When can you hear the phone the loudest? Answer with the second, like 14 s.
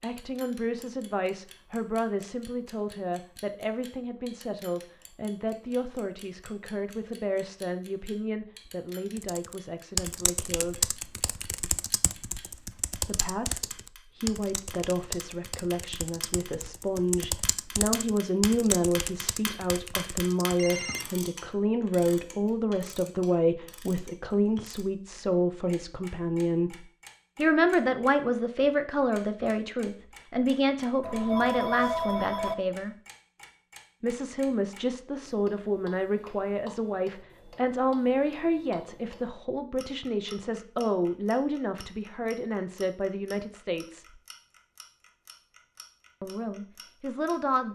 32 s.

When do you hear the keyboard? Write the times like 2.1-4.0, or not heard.
9.2-20.6.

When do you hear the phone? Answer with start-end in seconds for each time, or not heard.
20.6-21.1, 31.0-32.5.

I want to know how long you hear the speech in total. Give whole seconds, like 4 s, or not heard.
42 s.